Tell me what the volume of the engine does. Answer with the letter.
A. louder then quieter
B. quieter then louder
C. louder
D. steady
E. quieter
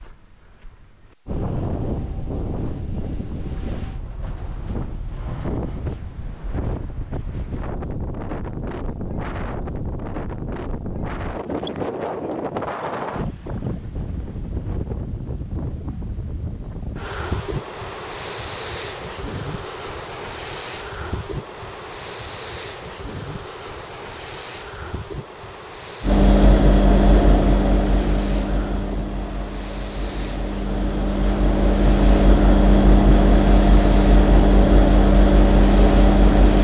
B.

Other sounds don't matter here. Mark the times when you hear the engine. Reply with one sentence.
You can hear the engine from 26.0 to 36.5 s.